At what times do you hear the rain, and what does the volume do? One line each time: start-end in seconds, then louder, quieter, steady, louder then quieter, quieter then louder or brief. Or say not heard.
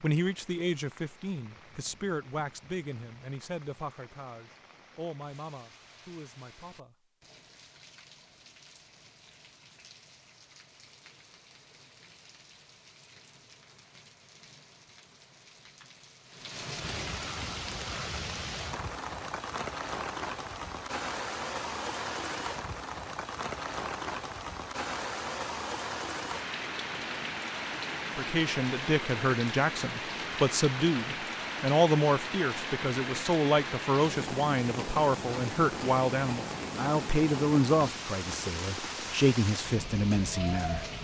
0.0-40.9 louder.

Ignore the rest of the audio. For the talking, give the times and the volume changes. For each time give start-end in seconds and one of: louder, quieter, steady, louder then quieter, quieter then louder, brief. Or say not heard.
0.0-7.0 quieter
28.1-40.9 steady.